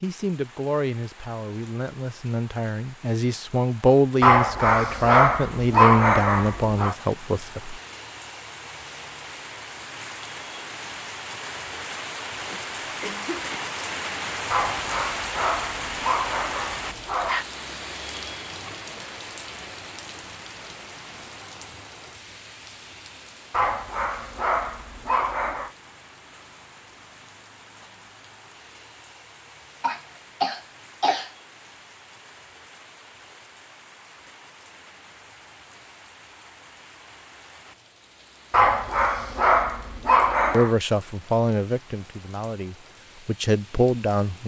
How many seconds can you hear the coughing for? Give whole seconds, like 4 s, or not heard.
3 s.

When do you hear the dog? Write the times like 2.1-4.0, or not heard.
4.2-7.0, 14.5-17.4, 23.5-25.7, 38.5-40.8.